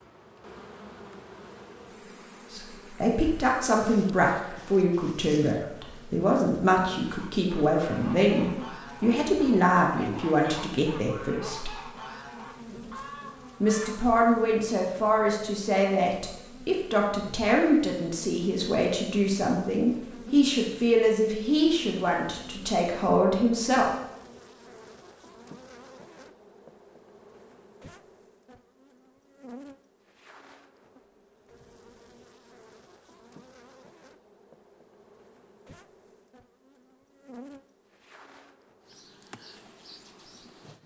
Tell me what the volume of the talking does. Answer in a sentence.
The loudness of the talking stays about the same.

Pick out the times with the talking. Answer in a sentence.
The talking can be heard from 2.5 to 11.7 s and from 13.6 to 23.9 s.